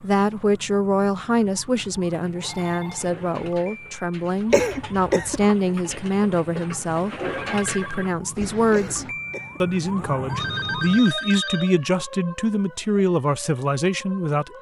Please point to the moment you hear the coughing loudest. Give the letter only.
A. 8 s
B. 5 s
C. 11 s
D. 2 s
B.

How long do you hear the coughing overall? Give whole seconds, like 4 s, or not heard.
2 s.